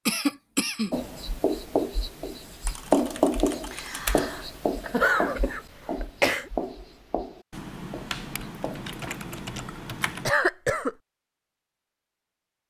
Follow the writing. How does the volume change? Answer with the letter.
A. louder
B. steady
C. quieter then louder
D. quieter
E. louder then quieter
E.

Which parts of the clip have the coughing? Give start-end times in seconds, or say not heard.
0.1-0.9, 4.8-6.5, 10.2-10.9.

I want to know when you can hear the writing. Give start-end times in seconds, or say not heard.
0.9-8.9.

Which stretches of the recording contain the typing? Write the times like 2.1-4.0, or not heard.
2.6-4.5, 7.5-10.3.